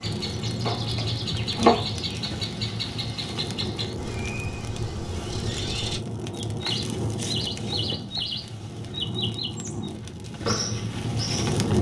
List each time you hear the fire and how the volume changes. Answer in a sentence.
You can hear the fire from 0.0 to 11.7 s, at a steady volume.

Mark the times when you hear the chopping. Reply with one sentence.
You can hear the chopping from 0.7 to 2.0 s.